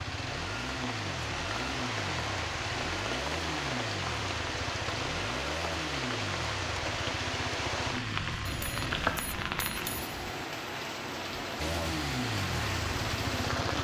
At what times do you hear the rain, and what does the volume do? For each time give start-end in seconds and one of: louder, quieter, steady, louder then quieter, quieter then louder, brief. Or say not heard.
0.0-13.7 steady.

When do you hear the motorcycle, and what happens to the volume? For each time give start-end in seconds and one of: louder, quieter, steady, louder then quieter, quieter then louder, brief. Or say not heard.
0.0-9.2 steady
11.6-13.7 brief.